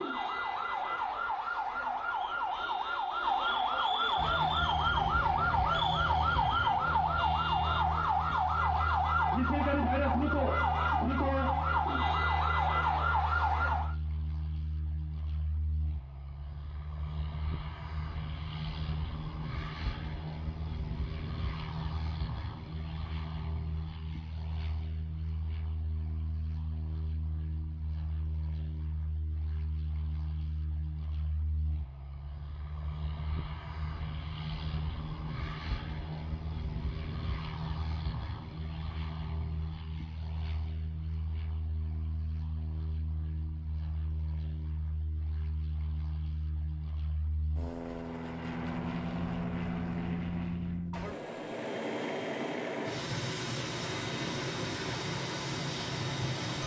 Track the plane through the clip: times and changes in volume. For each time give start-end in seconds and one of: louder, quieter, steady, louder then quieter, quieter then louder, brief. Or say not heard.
4.2-56.6 louder.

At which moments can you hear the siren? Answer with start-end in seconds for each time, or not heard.
0.0-13.9.